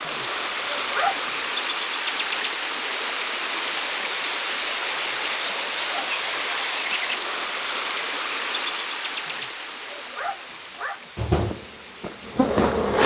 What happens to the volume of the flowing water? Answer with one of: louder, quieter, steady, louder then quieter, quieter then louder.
quieter.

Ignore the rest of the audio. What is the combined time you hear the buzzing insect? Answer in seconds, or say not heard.
2 s.